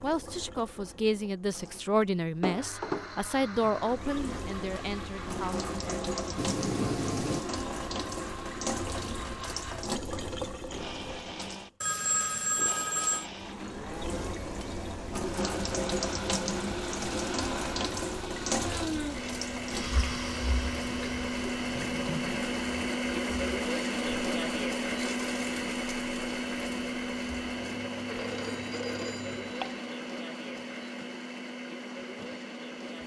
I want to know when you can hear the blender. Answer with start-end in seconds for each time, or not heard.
2.5-33.0.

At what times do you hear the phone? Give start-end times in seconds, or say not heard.
6.3-7.5, 11.8-13.3, 28.1-29.8.